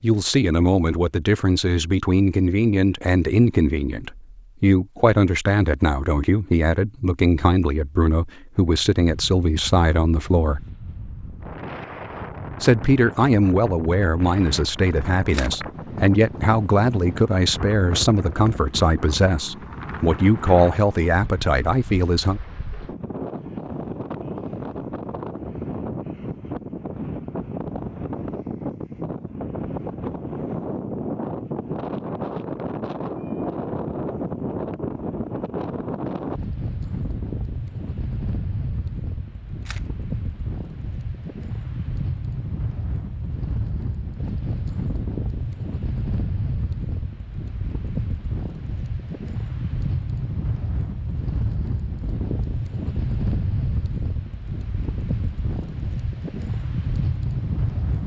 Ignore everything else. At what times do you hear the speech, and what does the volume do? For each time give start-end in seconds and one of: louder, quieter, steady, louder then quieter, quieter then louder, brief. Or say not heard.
0.0-10.7 steady
12.6-22.4 steady.